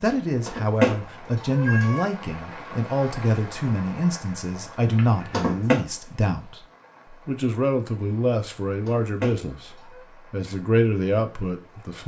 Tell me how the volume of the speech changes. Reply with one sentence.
The volume of the speech stays about the same.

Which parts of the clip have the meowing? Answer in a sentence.
The meowing can be heard from 0.5 to 2.0 s, from 5.0 to 5.8 s and from 8.8 to 10.0 s.